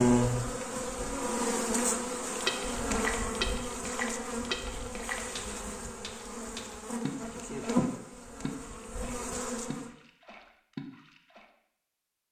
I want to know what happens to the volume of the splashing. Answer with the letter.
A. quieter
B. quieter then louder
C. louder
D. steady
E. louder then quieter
A.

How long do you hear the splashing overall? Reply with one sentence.
You can hear the splashing for 9 seconds altogether.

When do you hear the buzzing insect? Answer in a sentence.
The buzzing insect can be heard from 0.0 to 9.9 s.